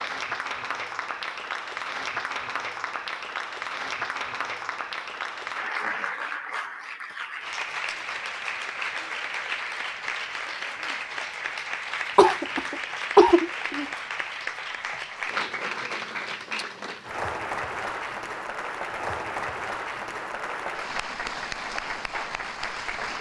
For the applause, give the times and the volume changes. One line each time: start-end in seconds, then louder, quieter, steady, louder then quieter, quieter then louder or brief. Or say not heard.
0.0-23.1 steady.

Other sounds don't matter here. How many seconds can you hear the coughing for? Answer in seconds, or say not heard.
2 s.